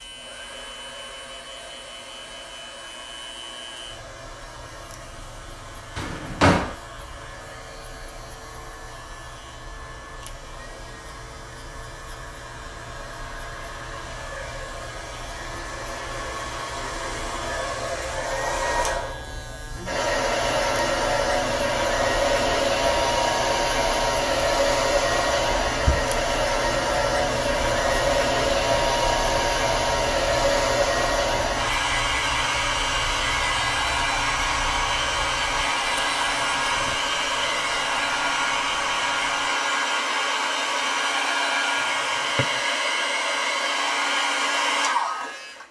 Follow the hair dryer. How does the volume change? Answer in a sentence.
The volume of the hair dryer goes up.